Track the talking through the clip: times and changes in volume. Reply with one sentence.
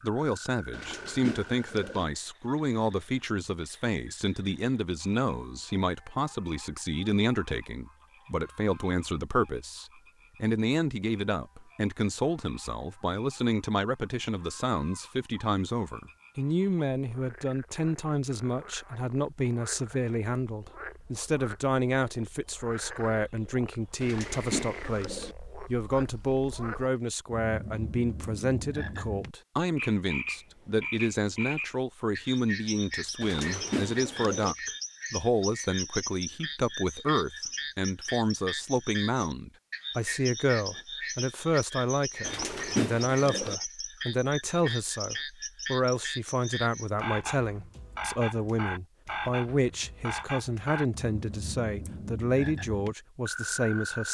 You can hear the talking from 0.0 to 54.0 s, at a steady volume.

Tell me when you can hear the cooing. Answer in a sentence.
You can hear the cooing from 0.7 to 2.0 s, from 24.0 to 25.4 s, from 33.2 to 34.5 s and from 42.2 to 43.6 s.